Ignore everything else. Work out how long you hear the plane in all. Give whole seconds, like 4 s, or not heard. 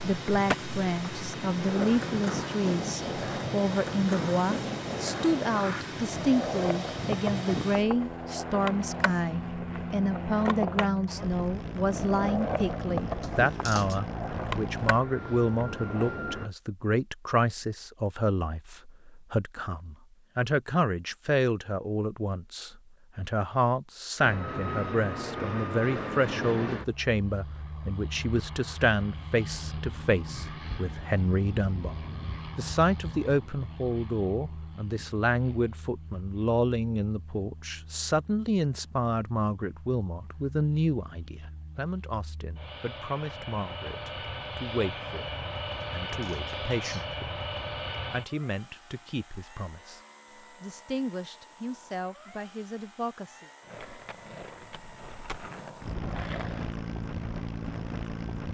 51 s.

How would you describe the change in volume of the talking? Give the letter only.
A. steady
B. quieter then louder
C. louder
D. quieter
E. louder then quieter
D.